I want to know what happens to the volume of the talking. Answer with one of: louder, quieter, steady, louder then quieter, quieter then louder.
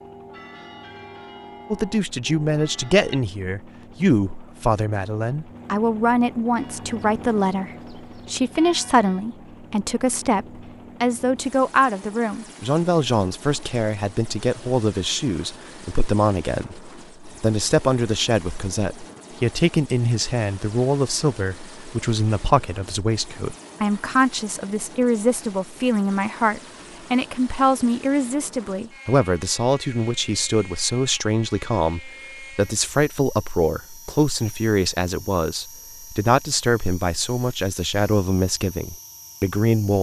steady.